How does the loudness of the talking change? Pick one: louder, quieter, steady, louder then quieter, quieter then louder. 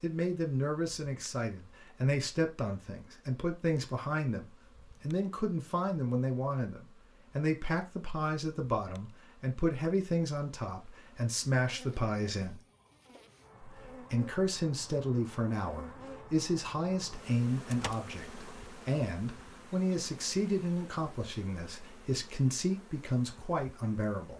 steady.